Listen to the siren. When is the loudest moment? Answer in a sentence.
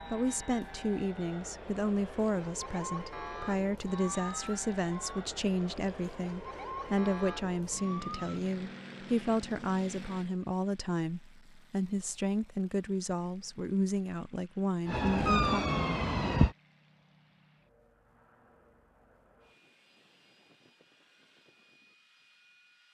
The loudest moment of the siren is at 16 seconds.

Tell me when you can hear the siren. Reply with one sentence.
The siren can be heard from 2.2 to 8.4 s and from 14.8 to 16.6 s.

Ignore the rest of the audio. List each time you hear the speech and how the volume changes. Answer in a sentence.
The speech can be heard from 0.1 to 15.7 s, at a steady volume.